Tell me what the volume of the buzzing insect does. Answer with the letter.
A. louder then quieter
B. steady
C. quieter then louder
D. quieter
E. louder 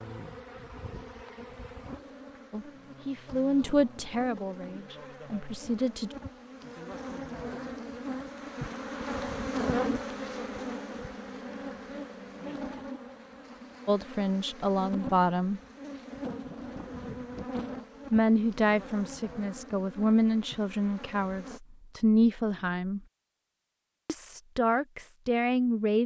A.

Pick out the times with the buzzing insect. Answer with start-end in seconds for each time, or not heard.
0.0-21.6.